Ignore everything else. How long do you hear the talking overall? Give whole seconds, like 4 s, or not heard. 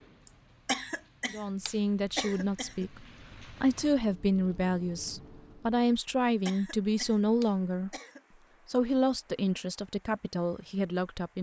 9 s.